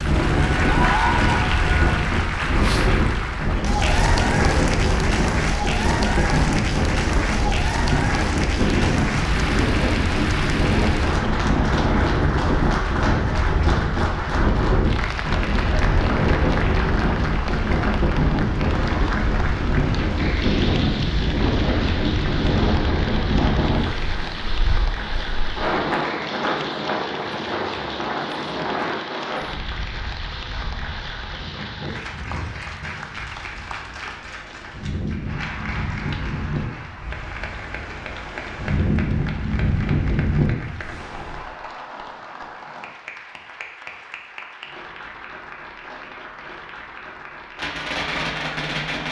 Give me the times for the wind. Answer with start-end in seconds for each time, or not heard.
0.0-41.4.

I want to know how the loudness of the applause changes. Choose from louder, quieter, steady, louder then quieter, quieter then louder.
quieter.